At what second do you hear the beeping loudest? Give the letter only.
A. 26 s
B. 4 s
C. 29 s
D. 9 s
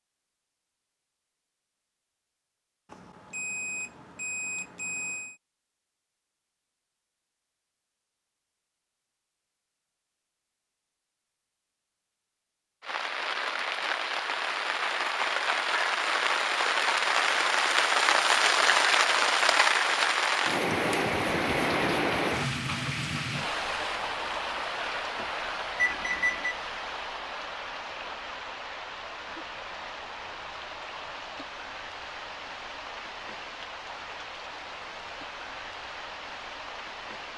A.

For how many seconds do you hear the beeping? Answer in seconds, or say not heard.
3 s.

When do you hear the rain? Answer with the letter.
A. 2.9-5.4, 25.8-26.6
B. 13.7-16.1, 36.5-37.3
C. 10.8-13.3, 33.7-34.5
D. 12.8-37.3
D.